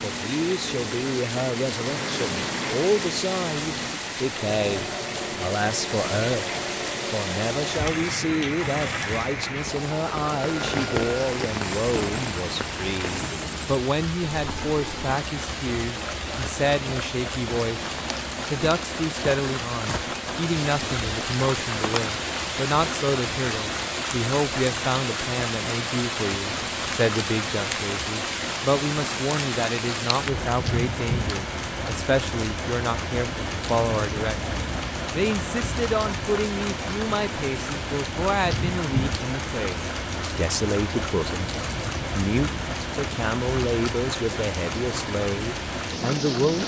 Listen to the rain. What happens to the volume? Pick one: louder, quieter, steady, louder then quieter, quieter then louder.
steady.